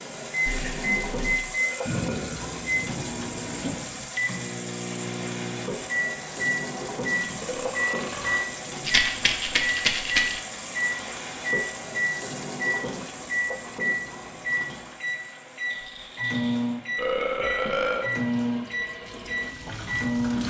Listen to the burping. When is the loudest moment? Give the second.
18 s.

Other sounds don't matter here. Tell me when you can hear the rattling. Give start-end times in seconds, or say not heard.
0.5-1.4, 8.8-10.4, 15.7-16.7.